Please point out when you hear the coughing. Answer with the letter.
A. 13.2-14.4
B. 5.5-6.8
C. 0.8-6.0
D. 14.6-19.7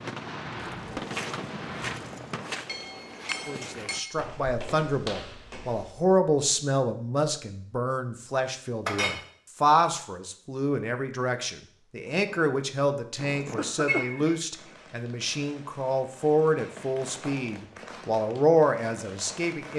A.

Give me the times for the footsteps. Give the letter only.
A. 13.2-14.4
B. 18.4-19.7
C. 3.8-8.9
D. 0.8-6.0
D.